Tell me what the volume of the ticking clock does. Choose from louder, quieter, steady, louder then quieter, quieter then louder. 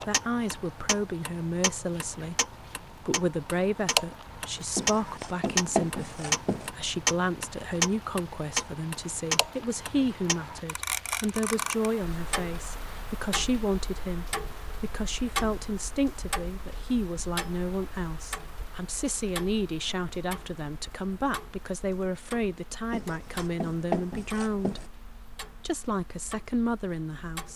quieter.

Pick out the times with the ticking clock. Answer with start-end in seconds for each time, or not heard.
0.0-27.5.